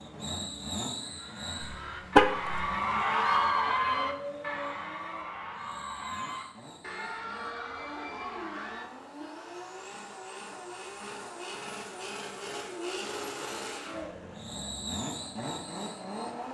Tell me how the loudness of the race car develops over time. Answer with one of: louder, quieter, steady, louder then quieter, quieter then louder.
quieter then louder.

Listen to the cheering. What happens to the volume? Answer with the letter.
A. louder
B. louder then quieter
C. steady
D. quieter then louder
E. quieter
B.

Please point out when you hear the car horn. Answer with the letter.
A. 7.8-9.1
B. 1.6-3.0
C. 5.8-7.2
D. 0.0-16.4
B.